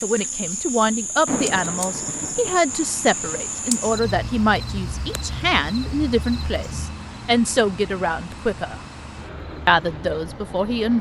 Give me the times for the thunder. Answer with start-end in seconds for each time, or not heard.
1.2-2.6.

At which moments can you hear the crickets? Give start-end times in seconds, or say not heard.
0.0-10.9.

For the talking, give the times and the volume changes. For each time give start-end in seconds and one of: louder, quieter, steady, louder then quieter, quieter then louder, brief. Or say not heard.
0.0-8.8 steady
9.7-10.9 brief.